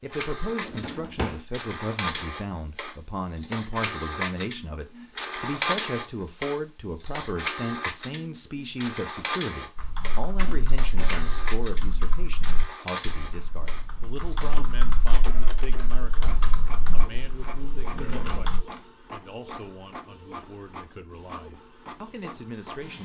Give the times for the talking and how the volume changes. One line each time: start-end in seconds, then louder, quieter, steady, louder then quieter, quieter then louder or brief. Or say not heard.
0.0-23.0 quieter.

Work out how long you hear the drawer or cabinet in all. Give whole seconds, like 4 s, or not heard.
3 s.